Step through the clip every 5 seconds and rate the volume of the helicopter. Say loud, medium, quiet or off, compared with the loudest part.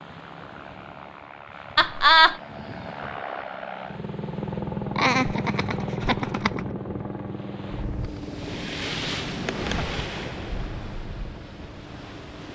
loud, loud, quiet.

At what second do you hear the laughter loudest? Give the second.
2 s.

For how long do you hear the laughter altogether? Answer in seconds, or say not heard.
3 s.